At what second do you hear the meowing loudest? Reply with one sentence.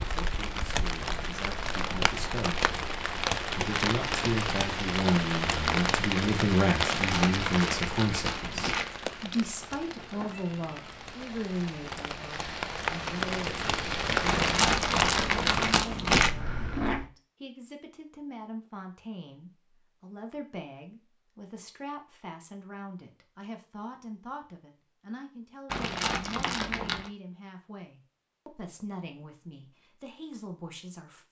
The volume of the meowing peaks at 17 seconds.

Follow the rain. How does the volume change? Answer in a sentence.
The volume of the rain goes down, then up.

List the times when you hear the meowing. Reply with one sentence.
The meowing can be heard from 9.8 to 11.2 s and from 16.1 to 17.1 s.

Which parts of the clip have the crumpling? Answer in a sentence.
You can hear the crumpling from 6.9 to 8.8 s, from 14.2 to 16.3 s and from 25.7 to 27.1 s.